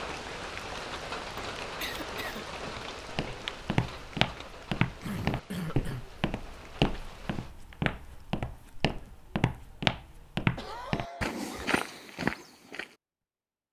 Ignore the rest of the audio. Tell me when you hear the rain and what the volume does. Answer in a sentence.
The rain can be heard from 0.0 to 7.5 s, getting quieter.